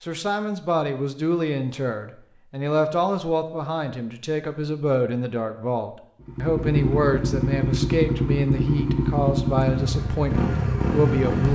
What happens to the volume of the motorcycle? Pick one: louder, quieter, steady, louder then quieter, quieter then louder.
steady.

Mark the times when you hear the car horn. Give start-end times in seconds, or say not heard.
not heard.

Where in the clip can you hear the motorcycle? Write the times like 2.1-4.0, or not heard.
6.2-11.4.